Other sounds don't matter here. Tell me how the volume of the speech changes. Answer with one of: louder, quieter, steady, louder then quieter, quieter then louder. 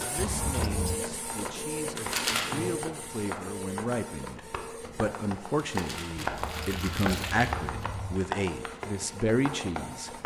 louder.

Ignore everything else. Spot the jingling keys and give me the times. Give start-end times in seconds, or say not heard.
0.1-1.0, 6.2-8.2.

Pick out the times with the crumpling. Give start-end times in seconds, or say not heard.
1.9-2.6, 5.6-7.5.